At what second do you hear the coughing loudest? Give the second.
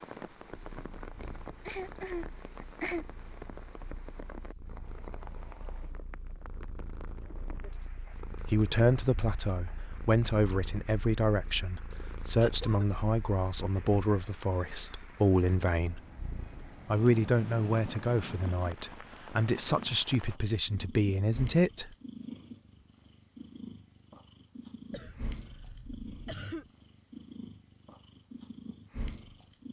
3 s.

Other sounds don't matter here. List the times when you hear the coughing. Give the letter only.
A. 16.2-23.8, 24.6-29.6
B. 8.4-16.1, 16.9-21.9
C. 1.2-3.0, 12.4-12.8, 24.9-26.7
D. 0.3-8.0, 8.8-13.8
C.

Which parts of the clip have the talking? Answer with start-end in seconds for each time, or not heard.
8.4-16.1, 16.9-21.9.